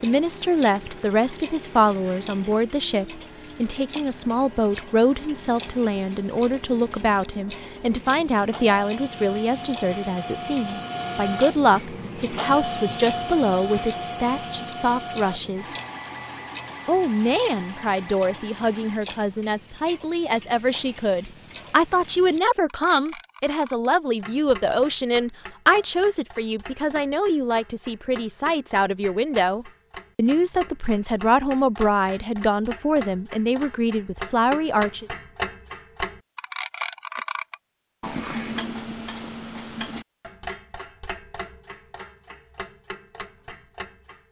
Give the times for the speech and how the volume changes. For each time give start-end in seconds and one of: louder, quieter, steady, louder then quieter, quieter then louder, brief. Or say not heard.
0.0-15.7 steady
16.9-35.0 steady.